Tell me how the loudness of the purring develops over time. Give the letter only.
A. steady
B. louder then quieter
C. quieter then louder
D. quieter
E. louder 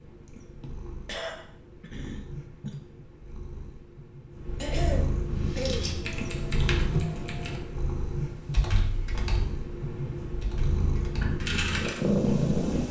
E.